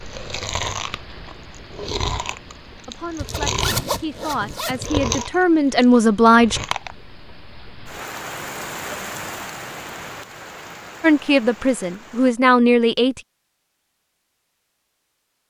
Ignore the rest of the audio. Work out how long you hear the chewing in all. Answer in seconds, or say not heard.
7 s.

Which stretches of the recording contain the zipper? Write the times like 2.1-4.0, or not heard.
3.1-4.9.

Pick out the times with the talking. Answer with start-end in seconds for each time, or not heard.
2.9-6.6, 11.0-13.2.